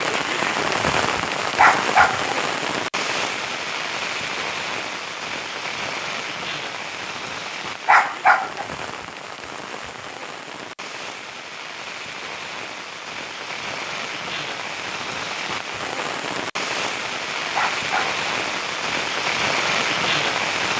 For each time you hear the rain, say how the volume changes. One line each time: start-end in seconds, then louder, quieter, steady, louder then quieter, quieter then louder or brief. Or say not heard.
0.0-20.7 quieter then louder.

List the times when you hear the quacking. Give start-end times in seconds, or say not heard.
not heard.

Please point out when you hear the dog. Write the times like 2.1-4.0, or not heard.
1.6-2.4, 7.8-8.7, 17.6-18.2.